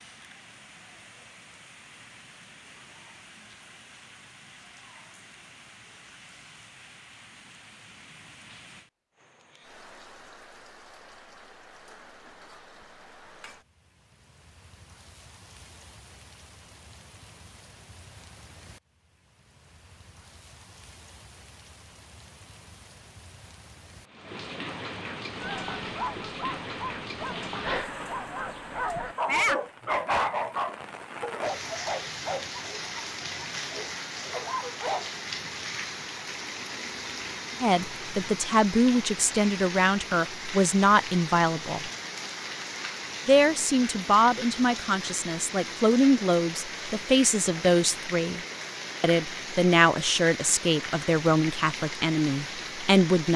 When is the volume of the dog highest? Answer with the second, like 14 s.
29 s.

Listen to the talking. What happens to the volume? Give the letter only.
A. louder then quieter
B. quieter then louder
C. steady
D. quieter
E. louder
C.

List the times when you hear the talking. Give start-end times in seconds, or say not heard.
37.6-41.9, 43.2-48.4, 49.0-53.3.